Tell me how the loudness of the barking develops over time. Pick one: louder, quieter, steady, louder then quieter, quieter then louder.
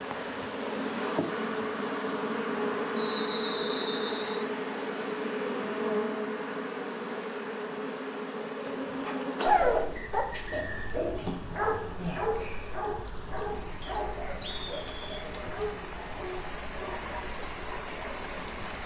quieter.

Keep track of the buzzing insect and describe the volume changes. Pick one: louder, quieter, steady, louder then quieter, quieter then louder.
quieter.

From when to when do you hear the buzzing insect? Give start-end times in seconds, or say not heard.
0.0-18.8.